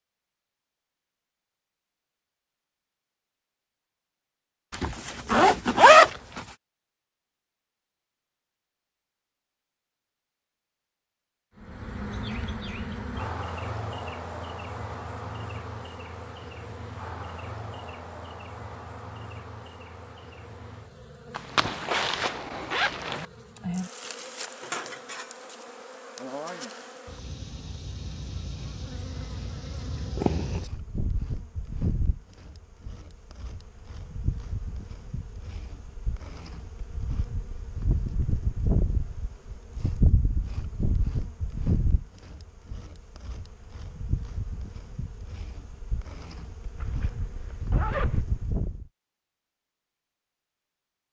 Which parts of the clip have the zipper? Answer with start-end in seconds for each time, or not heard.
4.7-6.4, 21.4-23.2, 46.8-48.2.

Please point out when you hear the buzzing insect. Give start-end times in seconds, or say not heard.
11.6-48.9.